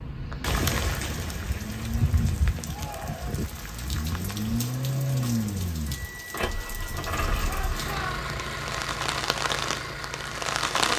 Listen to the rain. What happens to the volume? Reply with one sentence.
The volume of the rain goes down, then up.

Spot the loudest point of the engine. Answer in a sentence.
The volume of the engine peaks at 5 seconds.